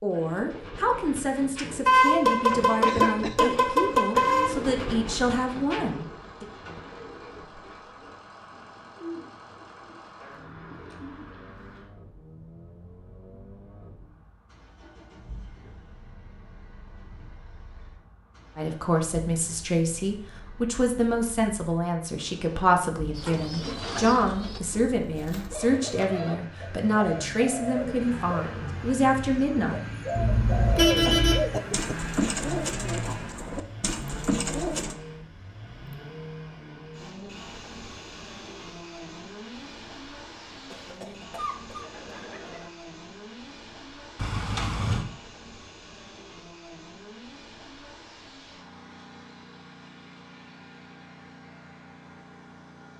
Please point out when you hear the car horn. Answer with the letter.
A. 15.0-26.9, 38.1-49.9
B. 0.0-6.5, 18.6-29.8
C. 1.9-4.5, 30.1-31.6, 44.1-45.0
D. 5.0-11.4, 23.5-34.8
C.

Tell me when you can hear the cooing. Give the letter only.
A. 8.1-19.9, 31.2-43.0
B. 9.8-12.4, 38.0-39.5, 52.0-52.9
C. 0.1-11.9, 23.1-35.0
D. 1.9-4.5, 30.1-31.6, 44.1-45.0
C.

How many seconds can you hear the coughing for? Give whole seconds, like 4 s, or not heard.
4 s.